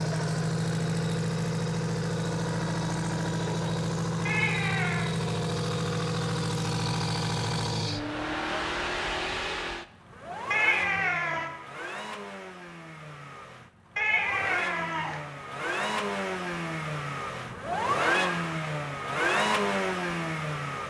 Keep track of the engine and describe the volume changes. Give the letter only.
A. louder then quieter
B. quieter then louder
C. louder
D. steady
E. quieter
B.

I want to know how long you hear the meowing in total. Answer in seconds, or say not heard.
3 s.